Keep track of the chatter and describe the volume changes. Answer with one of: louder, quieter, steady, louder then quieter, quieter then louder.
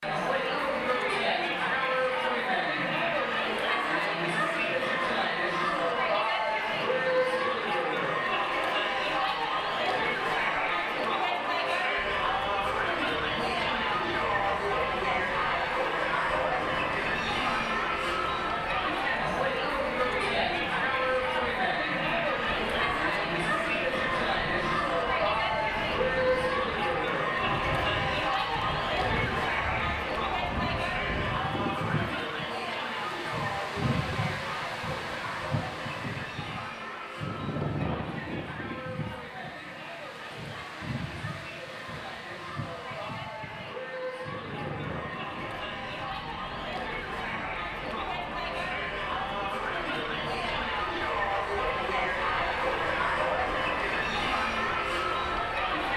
quieter then louder.